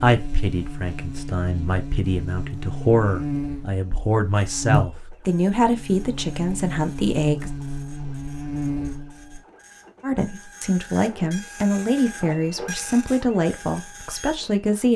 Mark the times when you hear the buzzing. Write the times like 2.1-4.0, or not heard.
0.0-9.4.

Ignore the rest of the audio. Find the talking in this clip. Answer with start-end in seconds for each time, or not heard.
0.0-7.5, 10.0-14.9.